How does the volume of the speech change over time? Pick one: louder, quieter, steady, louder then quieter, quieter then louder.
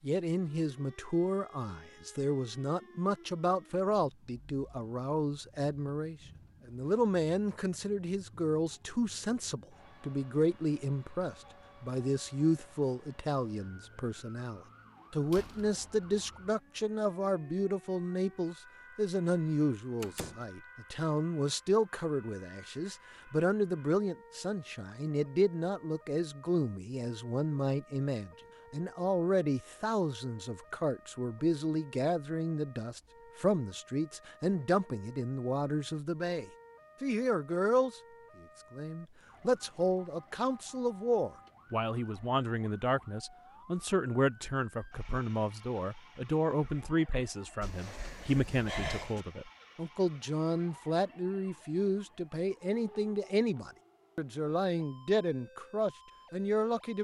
steady.